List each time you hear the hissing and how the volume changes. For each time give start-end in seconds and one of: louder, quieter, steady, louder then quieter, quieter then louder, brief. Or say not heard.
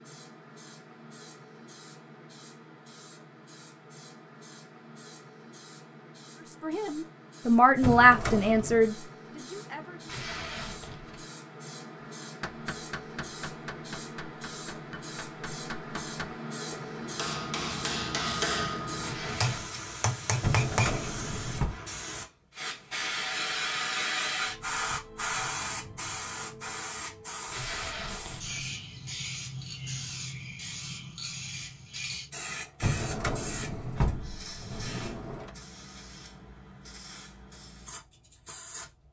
0.0-39.0 louder then quieter.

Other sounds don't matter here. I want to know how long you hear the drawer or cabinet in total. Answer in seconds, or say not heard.
5 s.